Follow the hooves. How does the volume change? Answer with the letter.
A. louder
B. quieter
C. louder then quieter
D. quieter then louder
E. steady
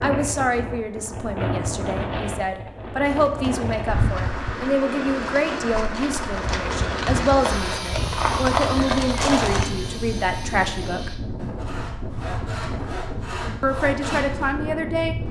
D.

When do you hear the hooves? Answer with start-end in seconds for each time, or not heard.
3.0-9.7.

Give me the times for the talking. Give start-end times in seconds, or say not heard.
0.0-11.1, 13.6-15.2.